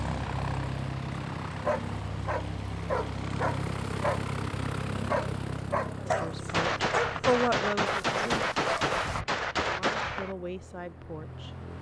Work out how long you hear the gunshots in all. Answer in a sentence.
You can hear the gunshots for 4 seconds altogether.